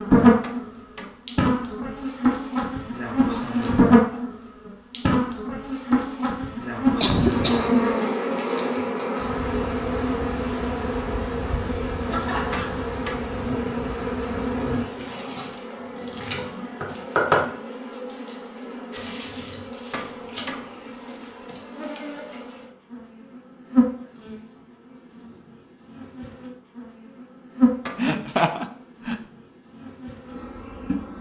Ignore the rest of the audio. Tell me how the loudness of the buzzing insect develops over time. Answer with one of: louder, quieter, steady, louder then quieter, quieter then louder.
quieter.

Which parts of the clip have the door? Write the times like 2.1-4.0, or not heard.
not heard.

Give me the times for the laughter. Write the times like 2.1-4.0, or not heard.
7.0-8.0, 12.1-12.8, 27.9-29.2.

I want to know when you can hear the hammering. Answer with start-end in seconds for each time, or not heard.
0.4-1.2, 12.5-13.3, 19.9-20.7, 27.9-28.6.